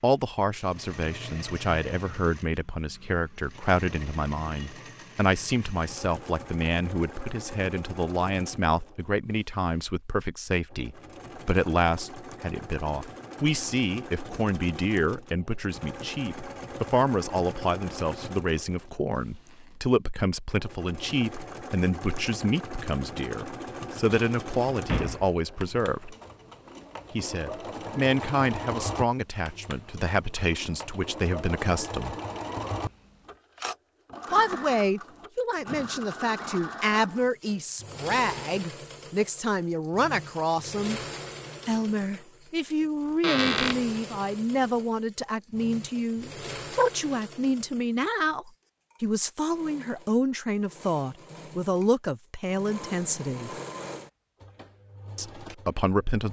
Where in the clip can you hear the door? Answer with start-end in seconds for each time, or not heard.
24.1-25.4, 43.2-43.8.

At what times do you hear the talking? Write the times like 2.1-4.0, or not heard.
0.0-26.1, 27.1-32.1, 34.3-41.0, 41.6-53.5, 55.1-56.2.